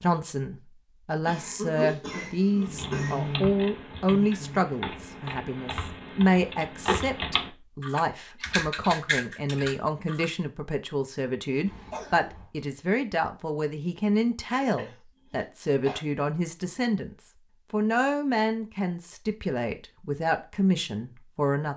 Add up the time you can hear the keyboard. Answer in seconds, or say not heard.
8 s.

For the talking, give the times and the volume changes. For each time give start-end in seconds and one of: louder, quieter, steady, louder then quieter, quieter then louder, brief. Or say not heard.
0.0-21.7 steady.